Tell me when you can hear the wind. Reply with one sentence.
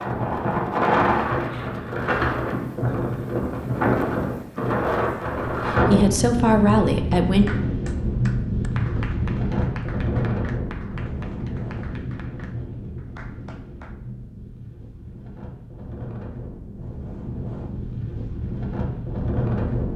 You can hear the wind from 0.0 to 19.9 s.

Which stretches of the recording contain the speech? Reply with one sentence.
The speech can be heard from 5.5 to 7.5 s.